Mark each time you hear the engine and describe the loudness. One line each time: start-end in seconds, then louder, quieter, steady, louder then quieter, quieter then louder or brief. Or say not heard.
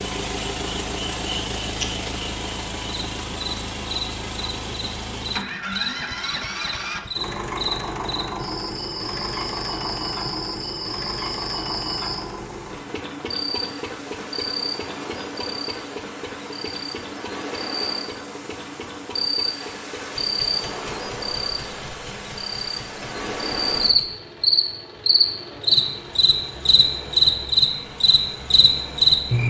0.0-29.4 quieter.